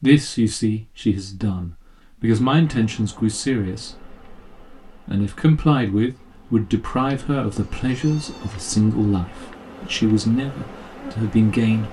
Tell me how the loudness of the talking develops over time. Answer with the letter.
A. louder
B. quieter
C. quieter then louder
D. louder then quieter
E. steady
E.